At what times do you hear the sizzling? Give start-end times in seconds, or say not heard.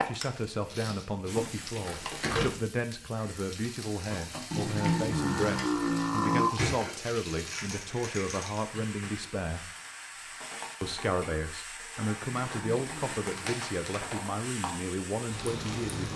0.0-16.1.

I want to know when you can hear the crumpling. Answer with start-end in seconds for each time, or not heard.
0.7-2.5, 6.5-8.7, 12.3-14.1.